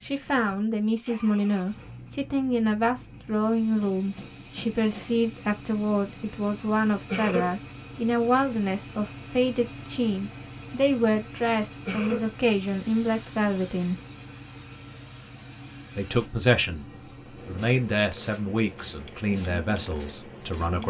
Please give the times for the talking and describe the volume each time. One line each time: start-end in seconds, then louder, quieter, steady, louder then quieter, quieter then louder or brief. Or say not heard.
0.0-13.9 steady
15.9-20.8 quieter.